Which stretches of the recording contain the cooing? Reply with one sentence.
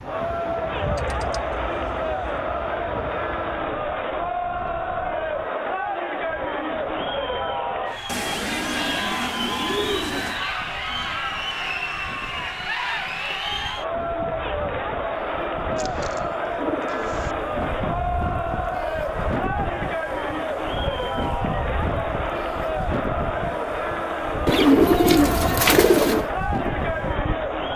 The cooing can be heard from 0.8 to 2.4 s, from 8.1 to 10.4 s, from 15.8 to 17.4 s and from 24.4 to 26.2 s.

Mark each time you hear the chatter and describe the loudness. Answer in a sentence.
You can hear the chatter from 0.0 to 27.7 s, at a steady volume.